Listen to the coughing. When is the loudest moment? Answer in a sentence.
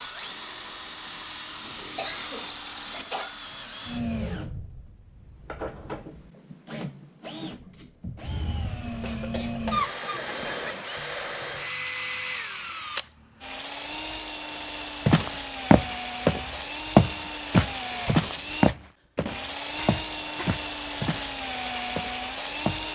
The loudest moment of the coughing is at 10 seconds.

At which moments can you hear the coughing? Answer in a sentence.
You can hear the coughing from 1.9 to 3.4 s, from 9.0 to 10.9 s and from 19.8 to 20.6 s.